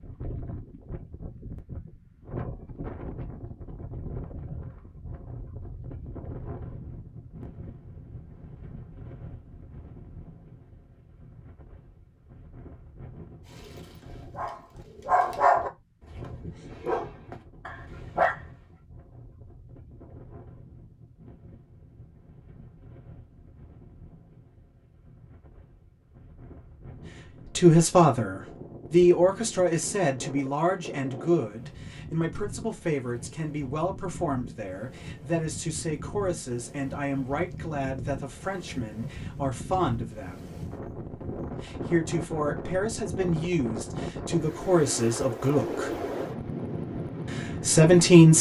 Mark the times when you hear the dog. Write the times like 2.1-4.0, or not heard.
14.0-18.8.